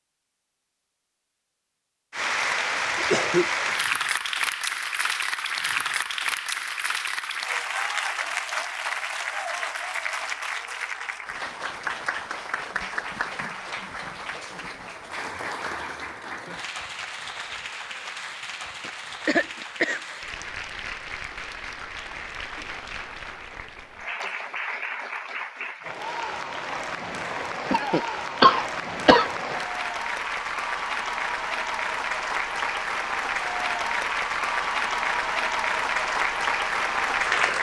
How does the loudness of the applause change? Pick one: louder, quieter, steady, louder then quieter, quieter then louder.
quieter then louder.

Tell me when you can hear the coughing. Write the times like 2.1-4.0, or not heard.
3.0-3.8, 18.9-20.2, 27.7-29.2.